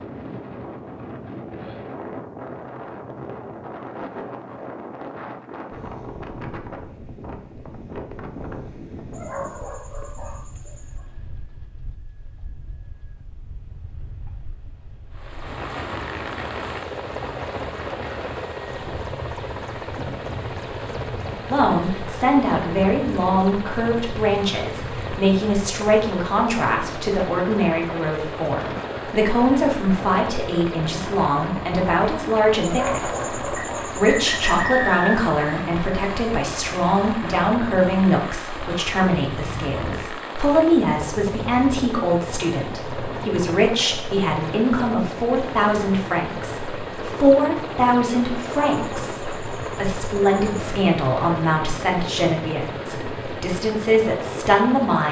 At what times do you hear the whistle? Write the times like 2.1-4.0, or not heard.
33.5-35.1.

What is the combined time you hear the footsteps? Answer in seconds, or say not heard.
not heard.